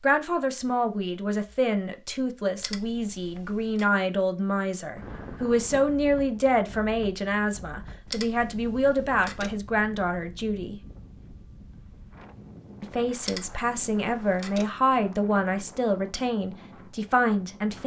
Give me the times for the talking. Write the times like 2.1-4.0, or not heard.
0.0-10.8, 12.8-17.8.